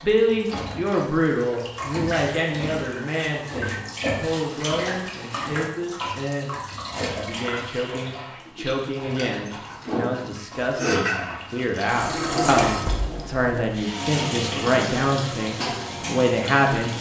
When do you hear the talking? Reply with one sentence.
The talking can be heard from 0.0 to 16.9 s.